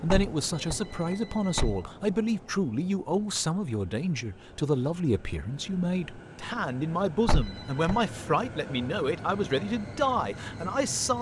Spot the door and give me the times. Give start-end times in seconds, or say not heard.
0.1-1.8, 7.2-8.0.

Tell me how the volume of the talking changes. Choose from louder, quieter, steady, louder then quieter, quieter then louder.
steady.